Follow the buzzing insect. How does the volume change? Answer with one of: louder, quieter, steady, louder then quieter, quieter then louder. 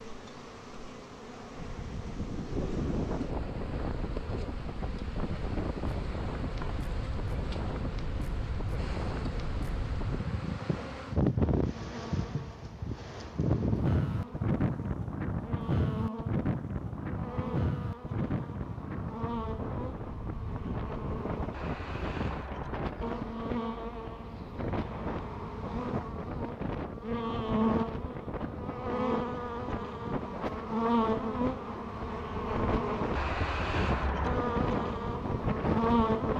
louder.